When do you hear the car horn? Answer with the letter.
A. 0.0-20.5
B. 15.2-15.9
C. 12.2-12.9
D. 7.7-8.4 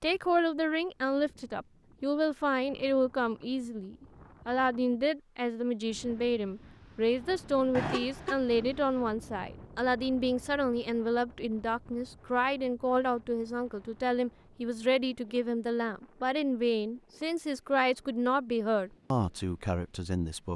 D.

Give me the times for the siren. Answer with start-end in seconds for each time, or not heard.
not heard.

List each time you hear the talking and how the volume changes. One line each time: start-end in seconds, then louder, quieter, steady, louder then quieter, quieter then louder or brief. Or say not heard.
0.0-20.5 steady.